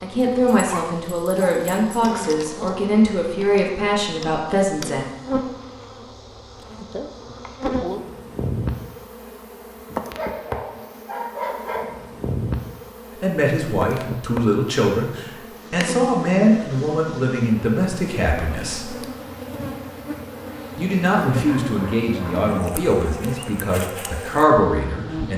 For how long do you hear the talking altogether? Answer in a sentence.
The talking can be heard for 15 seconds in total.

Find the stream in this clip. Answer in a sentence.
You can't hear the stream here.